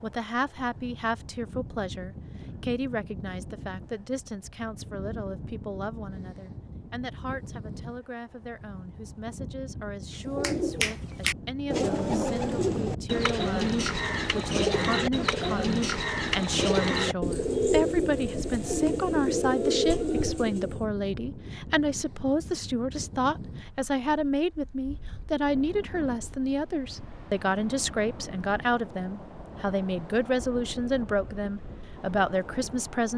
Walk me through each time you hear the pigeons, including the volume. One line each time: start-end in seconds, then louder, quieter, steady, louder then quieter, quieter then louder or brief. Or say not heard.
10.2-20.8 steady.